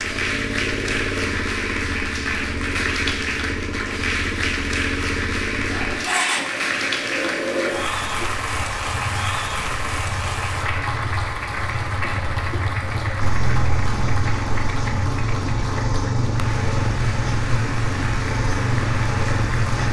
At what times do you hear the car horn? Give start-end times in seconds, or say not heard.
not heard.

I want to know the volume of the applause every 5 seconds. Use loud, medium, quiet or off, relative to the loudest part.
loud, loud, loud, medium.